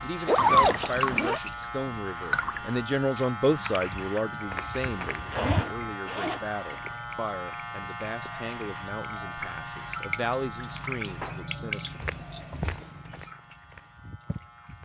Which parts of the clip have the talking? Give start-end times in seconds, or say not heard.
0.0-12.0.